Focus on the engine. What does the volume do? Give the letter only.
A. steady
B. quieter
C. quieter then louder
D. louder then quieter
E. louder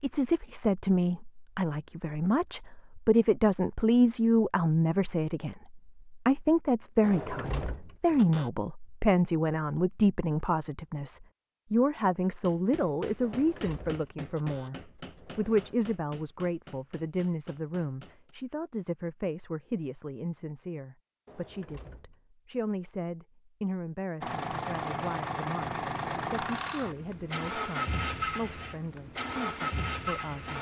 A.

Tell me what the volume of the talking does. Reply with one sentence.
The loudness of the talking goes down.